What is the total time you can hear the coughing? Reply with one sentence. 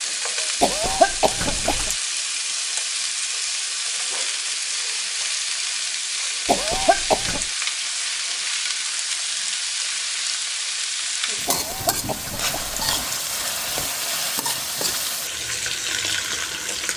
The coughing can be heard for 4 seconds in total.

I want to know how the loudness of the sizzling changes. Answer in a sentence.
The loudness of the sizzling stays about the same.